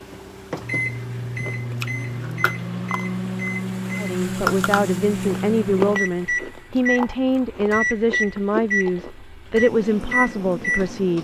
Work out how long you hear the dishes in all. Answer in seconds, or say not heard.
not heard.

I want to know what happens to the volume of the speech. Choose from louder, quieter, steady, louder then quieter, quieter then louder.
steady.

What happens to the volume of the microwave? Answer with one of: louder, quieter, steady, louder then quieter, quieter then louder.
steady.